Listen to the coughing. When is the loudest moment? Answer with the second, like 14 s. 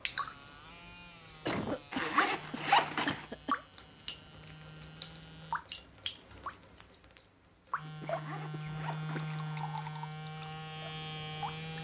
2 s.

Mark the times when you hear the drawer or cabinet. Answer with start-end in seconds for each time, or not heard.
not heard.